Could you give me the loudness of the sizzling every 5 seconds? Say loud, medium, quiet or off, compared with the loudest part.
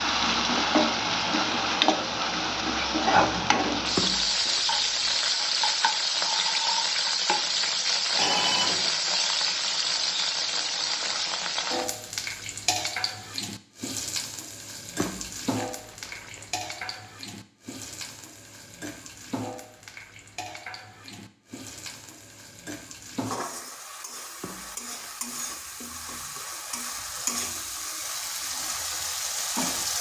loud, loud, medium, quiet, quiet, medium.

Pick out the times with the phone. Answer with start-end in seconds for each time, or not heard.
8.2-8.9.